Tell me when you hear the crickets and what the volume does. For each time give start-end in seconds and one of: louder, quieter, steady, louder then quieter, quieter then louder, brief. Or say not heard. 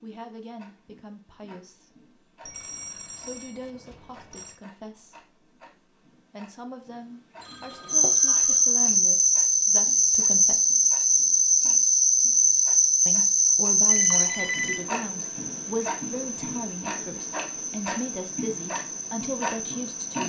7.8-20.1 quieter.